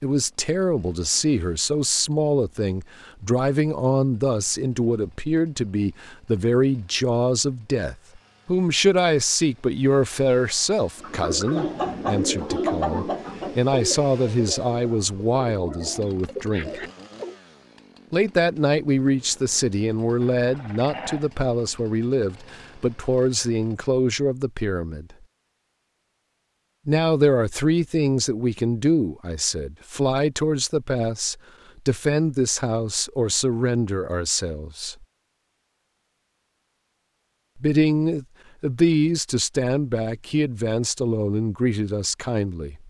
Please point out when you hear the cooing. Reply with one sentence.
The cooing can be heard from 11.0 to 17.4 s.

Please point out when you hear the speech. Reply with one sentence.
The speech can be heard from 0.0 to 16.8 s, from 18.1 to 25.1 s, from 26.9 to 35.0 s and from 37.5 to 42.8 s.